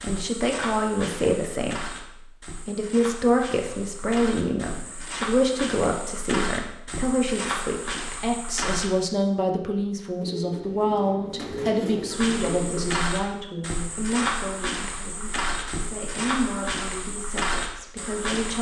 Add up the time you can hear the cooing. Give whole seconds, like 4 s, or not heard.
3 s.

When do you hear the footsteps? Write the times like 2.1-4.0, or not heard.
0.0-8.9, 12.1-18.5.